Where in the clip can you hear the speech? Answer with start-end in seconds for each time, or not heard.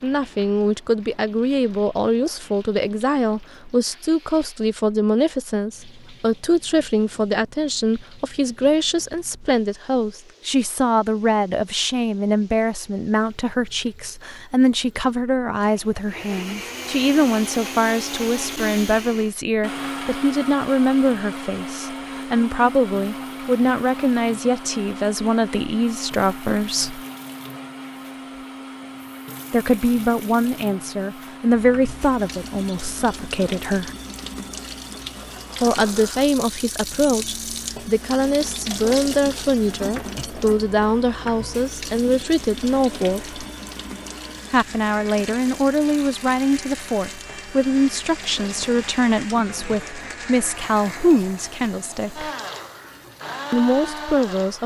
0.0-27.0, 29.5-33.9, 35.6-43.4, 44.5-52.3, 53.5-54.6.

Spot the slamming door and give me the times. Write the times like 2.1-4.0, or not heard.
not heard.